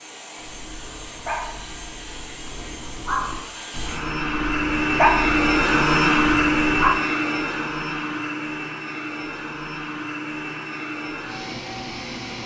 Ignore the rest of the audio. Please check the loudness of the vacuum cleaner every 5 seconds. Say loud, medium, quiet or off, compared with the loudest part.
medium, loud, medium.